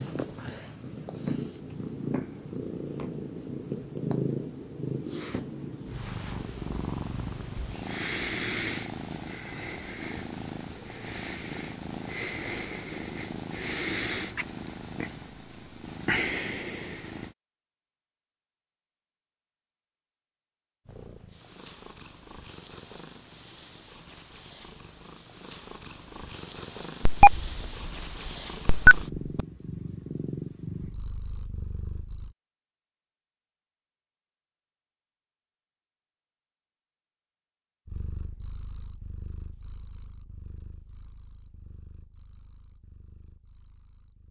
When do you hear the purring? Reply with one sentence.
You can hear the purring from 0.0 to 17.4 s, from 20.9 to 32.4 s and from 37.9 to 44.2 s.